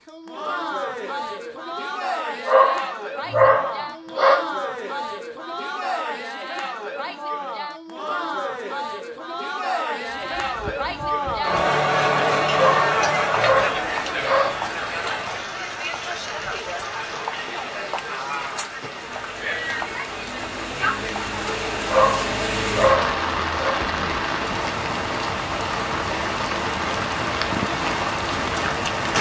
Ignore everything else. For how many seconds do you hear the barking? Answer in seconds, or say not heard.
6 s.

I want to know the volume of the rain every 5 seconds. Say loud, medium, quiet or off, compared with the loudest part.
off, off, quiet, quiet, loud, loud.